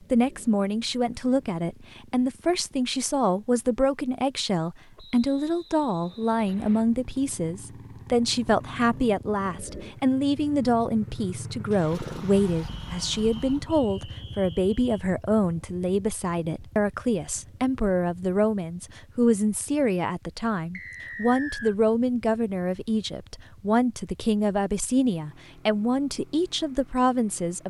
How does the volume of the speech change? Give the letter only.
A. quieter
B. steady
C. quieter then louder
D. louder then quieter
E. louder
B.